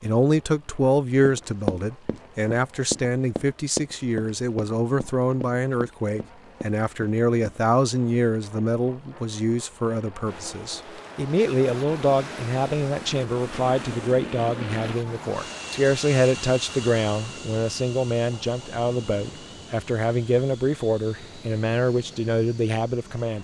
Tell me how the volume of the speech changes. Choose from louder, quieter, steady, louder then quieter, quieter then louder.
steady.